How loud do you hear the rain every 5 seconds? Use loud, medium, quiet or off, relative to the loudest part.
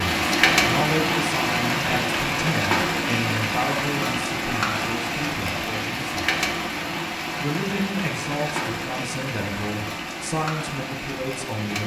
loud, medium, medium.